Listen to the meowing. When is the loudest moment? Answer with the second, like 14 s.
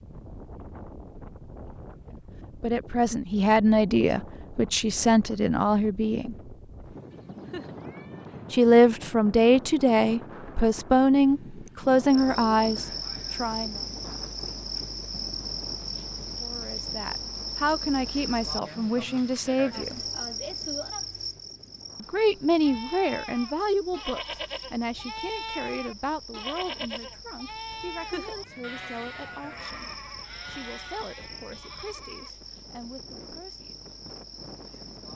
28 s.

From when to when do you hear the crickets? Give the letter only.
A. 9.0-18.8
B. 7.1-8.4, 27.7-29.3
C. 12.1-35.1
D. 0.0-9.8
C.